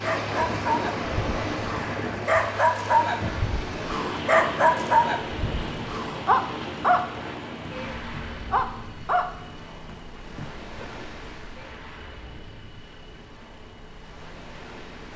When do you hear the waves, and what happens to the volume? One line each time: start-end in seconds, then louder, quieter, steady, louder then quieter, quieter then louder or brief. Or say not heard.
0.0-15.1 quieter.